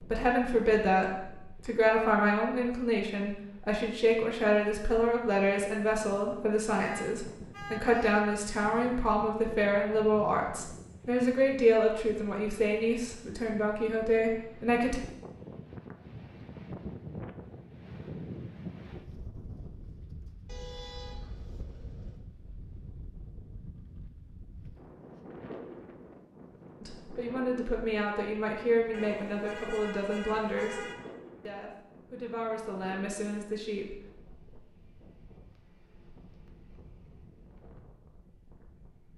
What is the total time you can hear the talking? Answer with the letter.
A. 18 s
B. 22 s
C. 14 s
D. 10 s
B.